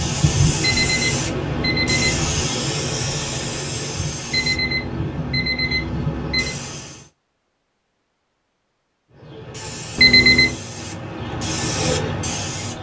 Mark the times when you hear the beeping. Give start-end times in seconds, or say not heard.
0.6-2.2, 4.3-6.5, 9.9-10.6.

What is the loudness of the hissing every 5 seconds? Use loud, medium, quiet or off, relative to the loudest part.
loud, medium, loud.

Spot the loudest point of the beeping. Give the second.
10 s.